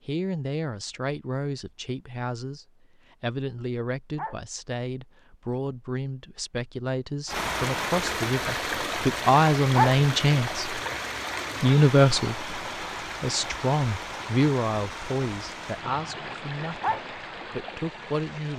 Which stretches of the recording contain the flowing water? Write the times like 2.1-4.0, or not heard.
7.2-18.5.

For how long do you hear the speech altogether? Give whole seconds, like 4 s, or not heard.
17 s.